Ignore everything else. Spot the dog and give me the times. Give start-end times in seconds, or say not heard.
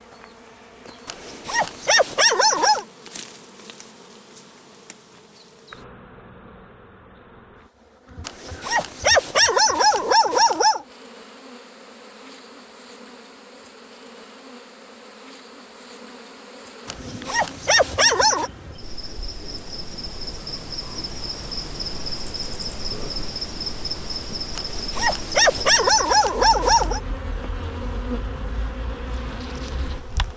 1.1-2.9, 8.2-10.8, 16.9-18.5, 24.6-27.0.